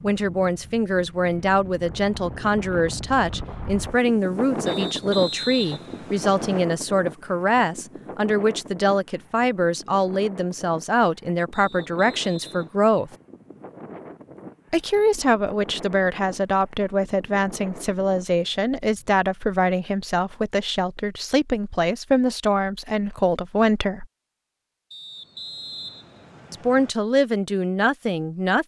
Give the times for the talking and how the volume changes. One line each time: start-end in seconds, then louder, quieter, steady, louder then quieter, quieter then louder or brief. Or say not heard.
0.0-13.1 steady
14.7-24.1 steady
26.5-28.6 brief.